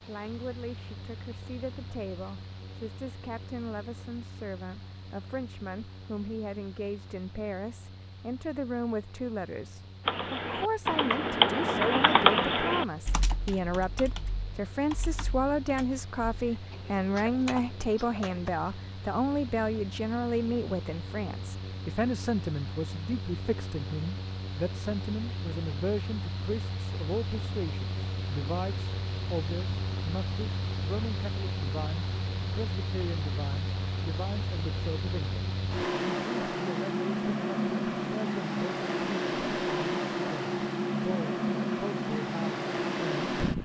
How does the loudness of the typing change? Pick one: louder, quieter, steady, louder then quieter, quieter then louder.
quieter then louder.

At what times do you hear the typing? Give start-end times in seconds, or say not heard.
10.1-18.5.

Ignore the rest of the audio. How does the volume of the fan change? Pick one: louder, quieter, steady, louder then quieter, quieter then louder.
louder.